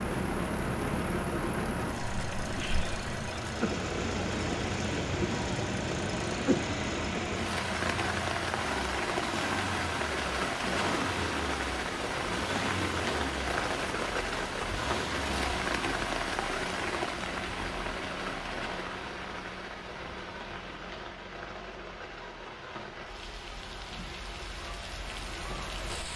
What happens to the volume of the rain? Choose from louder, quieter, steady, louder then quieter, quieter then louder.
quieter.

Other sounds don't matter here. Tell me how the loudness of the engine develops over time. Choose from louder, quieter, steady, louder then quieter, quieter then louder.
quieter.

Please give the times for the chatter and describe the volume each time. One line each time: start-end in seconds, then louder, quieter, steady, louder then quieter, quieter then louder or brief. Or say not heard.
not heard.